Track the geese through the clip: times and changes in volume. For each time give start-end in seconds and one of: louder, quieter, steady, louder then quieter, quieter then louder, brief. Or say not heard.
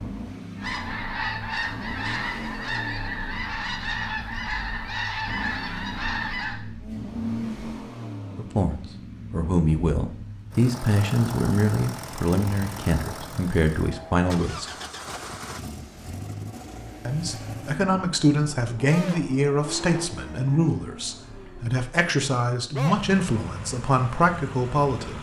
0.6-7.7 steady.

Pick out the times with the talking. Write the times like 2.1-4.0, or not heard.
8.3-14.7, 17.1-25.1.